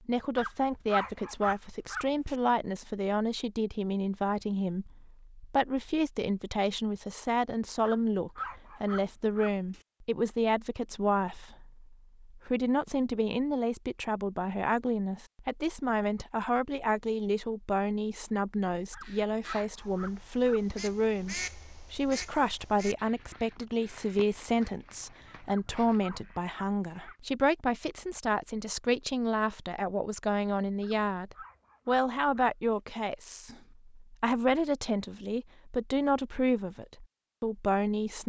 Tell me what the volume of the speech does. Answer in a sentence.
The loudness of the speech stays about the same.